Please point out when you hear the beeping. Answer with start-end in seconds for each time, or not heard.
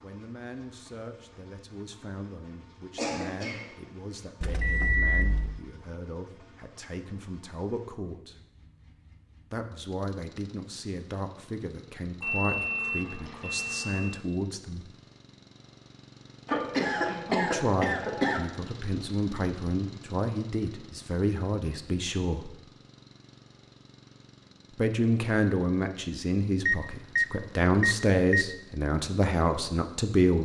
4.4-5.6, 12.2-14.2, 26.6-28.4.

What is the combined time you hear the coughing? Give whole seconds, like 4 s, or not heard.
3 s.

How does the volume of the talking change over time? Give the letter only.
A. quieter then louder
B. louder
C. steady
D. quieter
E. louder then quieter
B.